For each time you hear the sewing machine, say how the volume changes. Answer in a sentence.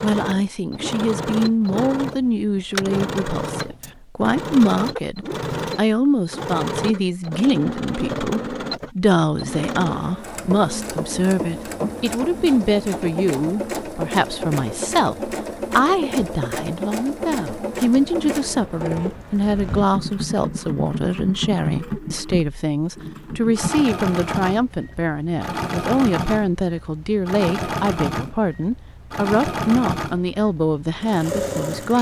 The sewing machine can be heard from 0.0 to 31.9 s, at a steady volume.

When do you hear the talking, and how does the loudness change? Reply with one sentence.
You can hear the talking from 0.0 to 31.9 s, at a steady volume.